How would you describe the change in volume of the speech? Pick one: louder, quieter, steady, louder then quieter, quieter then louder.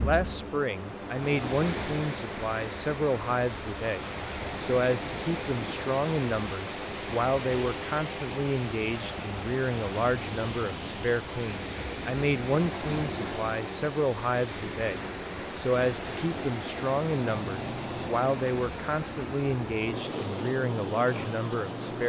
steady.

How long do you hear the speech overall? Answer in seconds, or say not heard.
22 s.